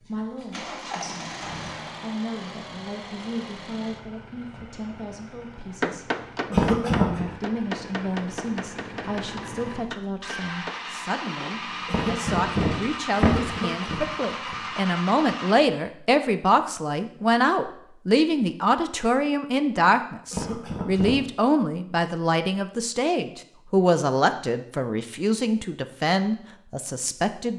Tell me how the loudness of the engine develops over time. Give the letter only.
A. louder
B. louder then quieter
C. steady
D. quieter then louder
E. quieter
D.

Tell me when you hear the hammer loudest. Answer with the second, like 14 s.
6 s.